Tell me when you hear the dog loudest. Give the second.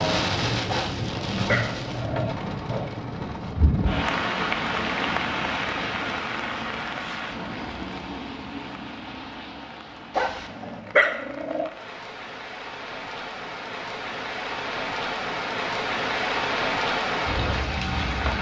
11 s.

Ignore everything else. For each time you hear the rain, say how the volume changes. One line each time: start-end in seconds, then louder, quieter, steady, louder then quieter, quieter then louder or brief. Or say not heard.
0.0-18.3 quieter then louder.